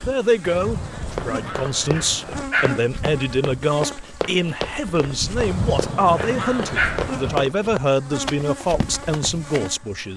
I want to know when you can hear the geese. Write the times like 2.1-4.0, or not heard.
0.4-2.5, 5.3-7.4.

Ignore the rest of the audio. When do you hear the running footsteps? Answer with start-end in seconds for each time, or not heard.
1.1-9.8.